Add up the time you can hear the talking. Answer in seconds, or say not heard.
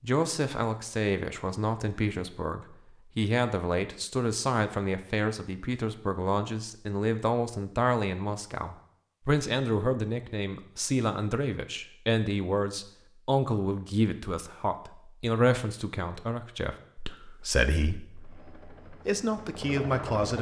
20 s.